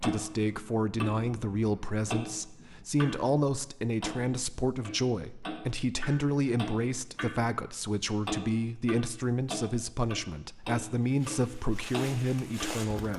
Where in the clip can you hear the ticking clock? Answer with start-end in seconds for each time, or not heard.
0.0-3.3, 4.0-12.8.